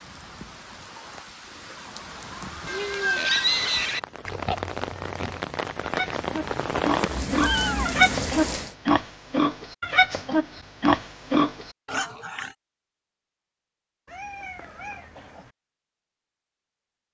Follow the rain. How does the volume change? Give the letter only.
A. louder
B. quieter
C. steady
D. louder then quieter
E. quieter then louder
A.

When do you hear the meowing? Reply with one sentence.
You can hear the meowing from 2.6 to 3.7 s, from 7.3 to 8.0 s and from 14.1 to 15.5 s.